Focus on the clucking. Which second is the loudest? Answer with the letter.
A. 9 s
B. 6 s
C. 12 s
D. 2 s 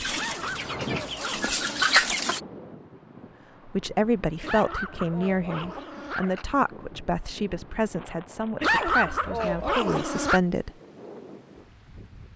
D.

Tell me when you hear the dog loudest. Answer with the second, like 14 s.
9 s.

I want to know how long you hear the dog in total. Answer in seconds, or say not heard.
6 s.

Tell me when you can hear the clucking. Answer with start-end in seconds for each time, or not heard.
0.0-2.4.